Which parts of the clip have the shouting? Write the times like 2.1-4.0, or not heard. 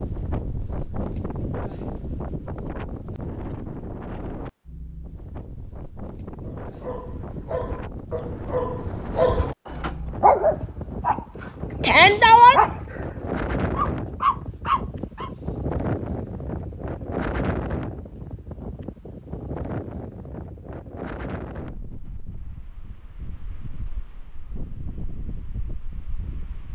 11.8-12.6.